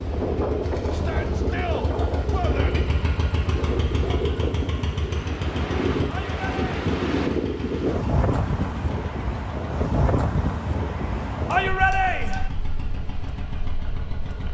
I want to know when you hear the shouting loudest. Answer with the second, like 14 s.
12 s.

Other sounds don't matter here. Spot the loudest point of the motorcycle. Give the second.
3 s.